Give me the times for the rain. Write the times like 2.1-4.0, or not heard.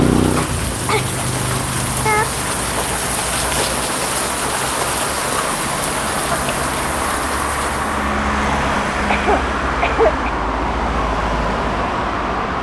0.0-8.0.